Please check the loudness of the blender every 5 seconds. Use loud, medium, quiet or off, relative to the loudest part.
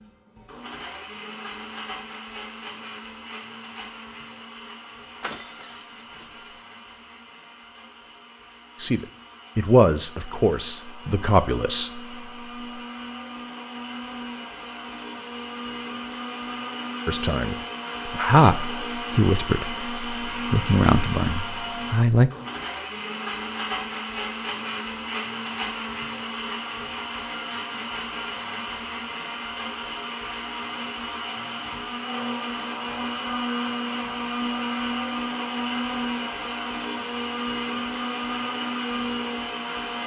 medium, quiet, medium, loud, loud, loud, loud, loud.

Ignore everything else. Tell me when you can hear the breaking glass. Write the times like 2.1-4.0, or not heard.
5.2-6.5.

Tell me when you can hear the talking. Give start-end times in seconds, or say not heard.
8.8-12.0, 17.1-22.3.